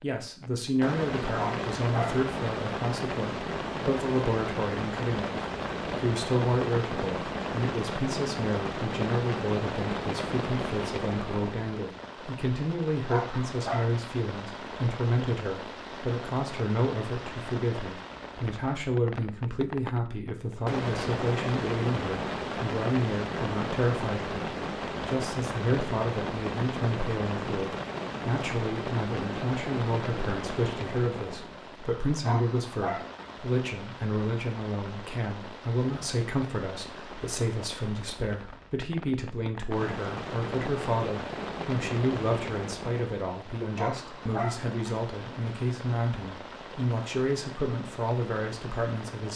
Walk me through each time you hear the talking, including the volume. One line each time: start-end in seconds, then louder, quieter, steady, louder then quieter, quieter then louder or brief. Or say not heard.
0.0-49.3 steady.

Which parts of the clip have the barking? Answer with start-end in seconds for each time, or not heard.
1.4-2.2, 13.1-13.9, 32.2-33.1, 43.8-44.6.